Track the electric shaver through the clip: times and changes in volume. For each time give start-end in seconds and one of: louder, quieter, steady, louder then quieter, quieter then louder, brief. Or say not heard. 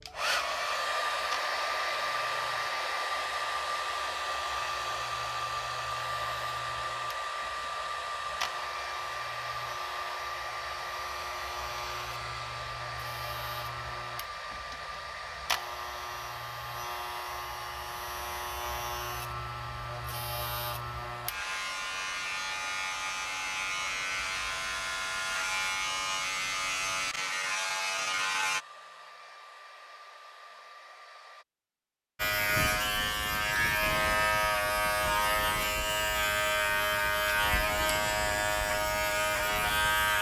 0.0-28.6 louder
32.1-40.1 steady.